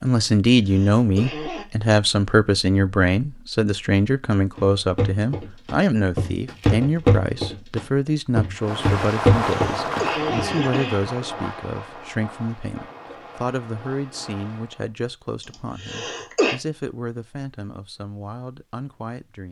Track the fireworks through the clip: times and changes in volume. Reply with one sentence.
You can hear the fireworks from 8.6 to 14.9 s, getting quieter.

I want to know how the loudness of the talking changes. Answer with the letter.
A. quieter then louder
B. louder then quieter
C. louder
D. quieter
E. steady
D.